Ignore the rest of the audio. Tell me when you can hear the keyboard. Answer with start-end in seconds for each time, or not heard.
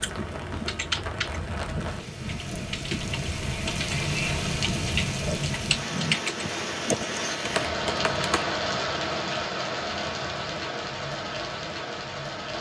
0.0-8.4.